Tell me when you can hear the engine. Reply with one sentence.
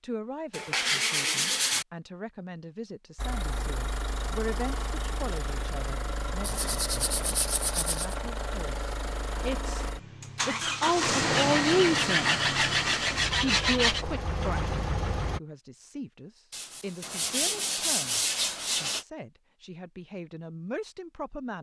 You can hear the engine from 3.1 to 15.4 s.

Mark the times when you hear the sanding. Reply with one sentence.
You can hear the sanding from 0.5 to 1.9 s, from 6.4 to 8.2 s, from 11.3 to 14.1 s and from 16.5 to 19.1 s.